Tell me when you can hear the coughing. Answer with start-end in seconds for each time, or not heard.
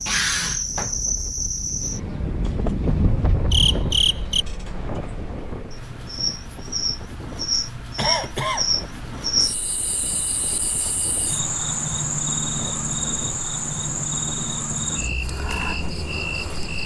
8.0-8.7.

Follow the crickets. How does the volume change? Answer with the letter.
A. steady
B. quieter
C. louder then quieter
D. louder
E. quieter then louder
A.